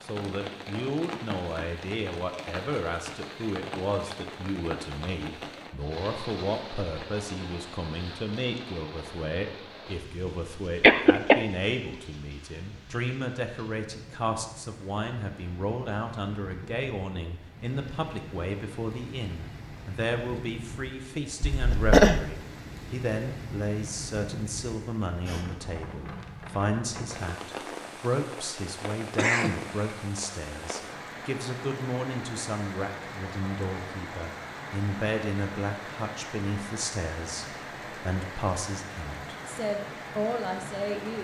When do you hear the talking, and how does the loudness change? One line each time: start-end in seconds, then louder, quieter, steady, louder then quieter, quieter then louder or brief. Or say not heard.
0.0-41.1 steady.